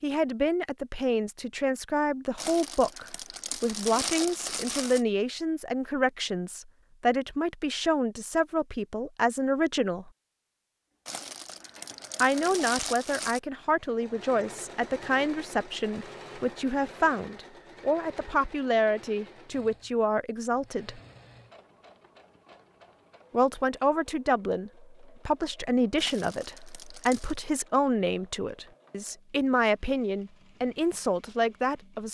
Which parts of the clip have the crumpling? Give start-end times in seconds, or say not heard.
2.4-5.0, 11.1-13.4, 25.9-27.4.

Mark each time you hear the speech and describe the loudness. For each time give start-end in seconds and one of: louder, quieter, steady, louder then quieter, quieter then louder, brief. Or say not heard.
0.0-10.1 steady
12.2-21.0 steady
23.3-32.0 steady.